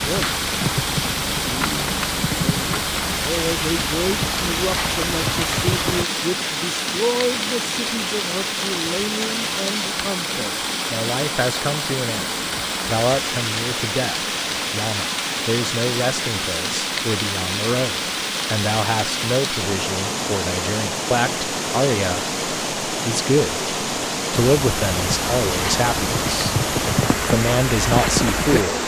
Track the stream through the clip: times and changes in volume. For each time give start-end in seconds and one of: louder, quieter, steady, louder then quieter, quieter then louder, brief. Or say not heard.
0.0-28.8 steady.